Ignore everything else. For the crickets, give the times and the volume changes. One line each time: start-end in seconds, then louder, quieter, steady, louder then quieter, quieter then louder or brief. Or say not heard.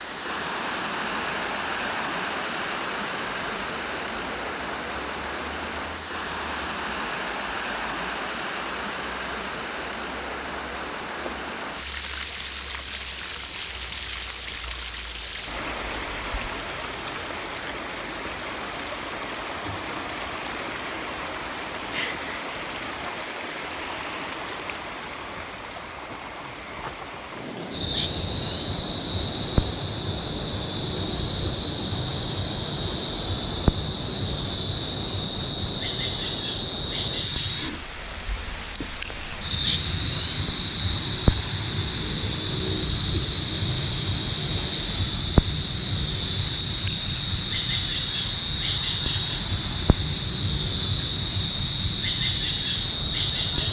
0.0-53.6 louder.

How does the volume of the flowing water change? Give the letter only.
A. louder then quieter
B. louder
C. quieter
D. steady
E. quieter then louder
C.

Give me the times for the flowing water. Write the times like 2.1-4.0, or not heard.
0.0-53.6.